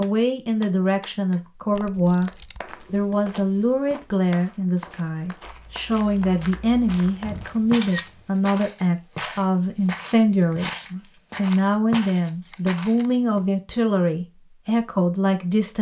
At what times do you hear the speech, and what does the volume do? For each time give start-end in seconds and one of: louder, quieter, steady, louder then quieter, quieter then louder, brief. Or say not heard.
0.0-15.7 steady.